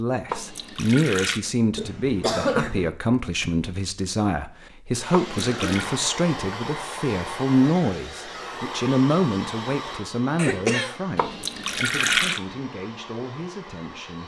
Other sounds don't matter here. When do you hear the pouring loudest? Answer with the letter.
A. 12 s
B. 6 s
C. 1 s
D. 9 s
A.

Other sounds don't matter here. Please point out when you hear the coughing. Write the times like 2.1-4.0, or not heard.
1.8-2.9, 5.3-5.9, 10.3-11.0.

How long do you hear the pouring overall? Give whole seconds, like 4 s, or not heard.
3 s.